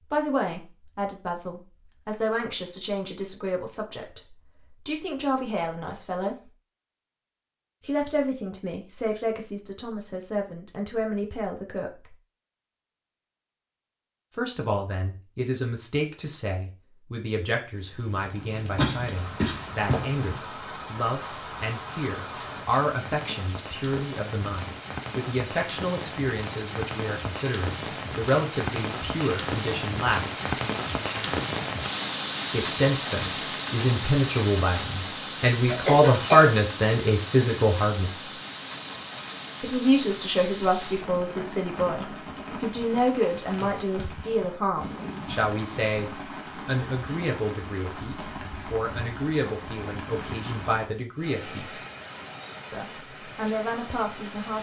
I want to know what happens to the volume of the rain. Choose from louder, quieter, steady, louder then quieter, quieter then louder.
louder then quieter.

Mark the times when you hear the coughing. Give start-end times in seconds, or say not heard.
18.8-20.4, 35.6-36.5.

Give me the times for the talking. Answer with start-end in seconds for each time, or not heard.
0.1-6.5, 7.8-12.2, 14.3-30.5, 32.5-38.3, 39.6-51.8, 52.7-54.5.